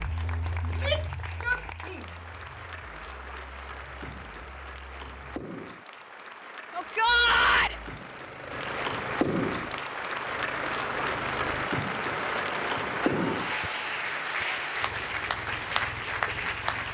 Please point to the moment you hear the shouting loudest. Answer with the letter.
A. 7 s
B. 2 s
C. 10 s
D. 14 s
A.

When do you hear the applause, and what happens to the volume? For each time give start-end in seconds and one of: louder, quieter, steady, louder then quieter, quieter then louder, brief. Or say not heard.
0.0-16.8 louder.